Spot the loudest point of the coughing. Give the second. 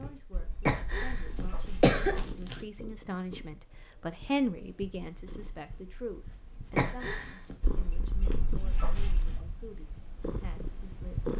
2 s.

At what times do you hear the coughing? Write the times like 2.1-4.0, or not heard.
0.7-2.5, 6.8-7.5.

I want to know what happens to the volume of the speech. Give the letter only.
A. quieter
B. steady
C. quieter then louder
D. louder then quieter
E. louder
D.